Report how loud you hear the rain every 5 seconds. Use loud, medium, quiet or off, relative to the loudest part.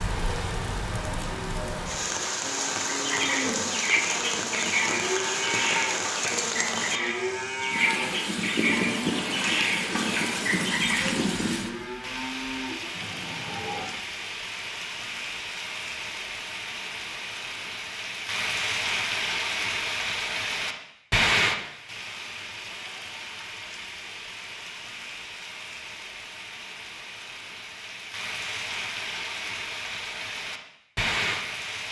loud, loud, loud, loud, loud, medium, loud.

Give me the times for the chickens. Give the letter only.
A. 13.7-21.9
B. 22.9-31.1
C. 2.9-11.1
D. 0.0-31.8
C.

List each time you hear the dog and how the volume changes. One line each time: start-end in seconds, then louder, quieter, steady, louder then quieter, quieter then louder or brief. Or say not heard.
not heard.